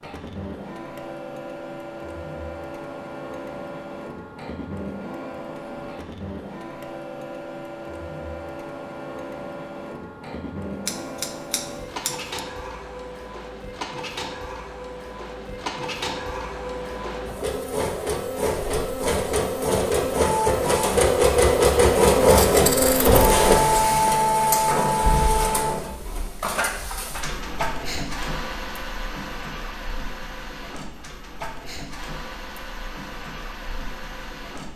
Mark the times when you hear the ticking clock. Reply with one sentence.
The ticking clock can't be heard in this clip.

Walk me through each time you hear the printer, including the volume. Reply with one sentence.
The printer can be heard from 0.0 to 34.7 s, getting louder then quieter.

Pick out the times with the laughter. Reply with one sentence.
You can't hear the laughter here.